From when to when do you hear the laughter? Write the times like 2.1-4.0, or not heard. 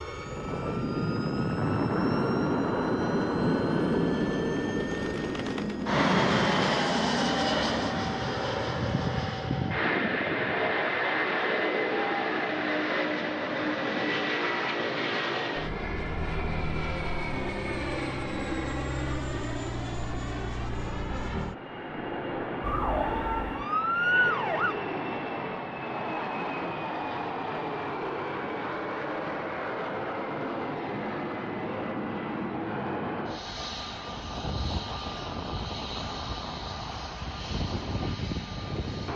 not heard.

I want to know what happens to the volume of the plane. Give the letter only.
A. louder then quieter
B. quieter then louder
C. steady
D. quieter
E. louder
D.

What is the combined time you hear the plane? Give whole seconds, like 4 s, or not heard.
39 s.